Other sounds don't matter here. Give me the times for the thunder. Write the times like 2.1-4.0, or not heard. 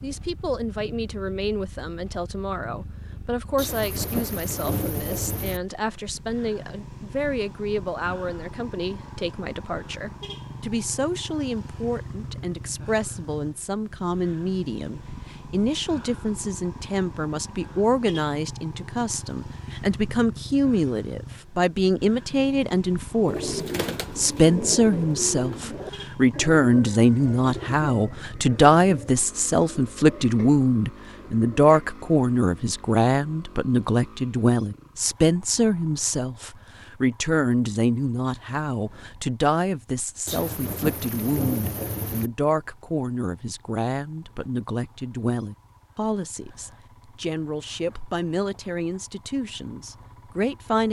3.5-5.6, 40.2-42.3.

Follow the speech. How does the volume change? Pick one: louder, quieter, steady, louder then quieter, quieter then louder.
louder then quieter.